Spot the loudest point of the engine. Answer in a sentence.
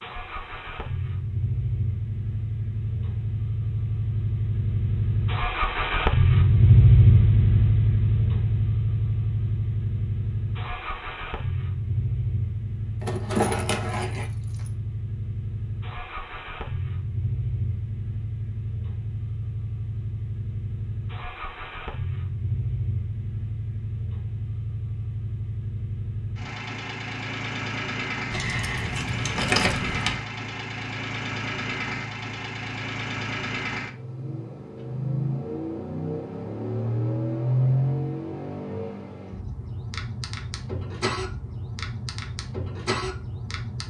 The volume of the engine peaks at 7 seconds.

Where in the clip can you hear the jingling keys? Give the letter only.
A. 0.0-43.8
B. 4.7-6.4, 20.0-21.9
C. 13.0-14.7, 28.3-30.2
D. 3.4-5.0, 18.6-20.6
C.